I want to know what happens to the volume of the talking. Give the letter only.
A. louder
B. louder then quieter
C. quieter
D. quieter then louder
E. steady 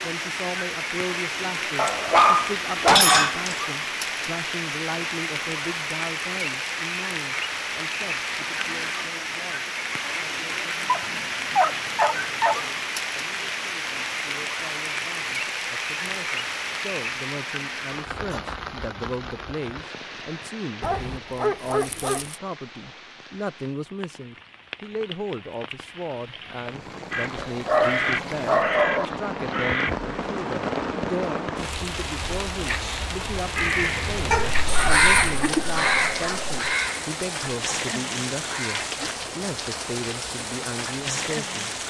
D.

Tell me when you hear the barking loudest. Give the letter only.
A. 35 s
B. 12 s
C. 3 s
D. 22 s
C.